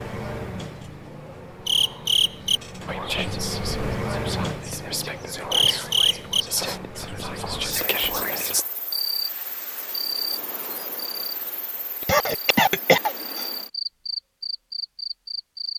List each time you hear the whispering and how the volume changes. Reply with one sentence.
You can hear the whispering from 2.9 to 8.7 s, getting louder.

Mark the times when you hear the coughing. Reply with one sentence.
You can hear the coughing from 12.0 to 13.4 s.